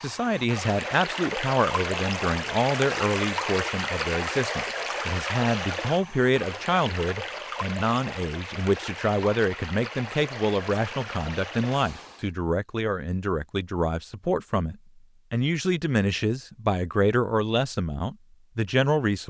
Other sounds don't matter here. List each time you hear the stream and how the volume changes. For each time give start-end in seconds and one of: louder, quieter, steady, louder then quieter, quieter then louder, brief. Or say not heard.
0.0-12.3 quieter.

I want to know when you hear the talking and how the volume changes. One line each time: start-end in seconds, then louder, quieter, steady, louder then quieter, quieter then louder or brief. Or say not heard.
0.0-19.2 steady.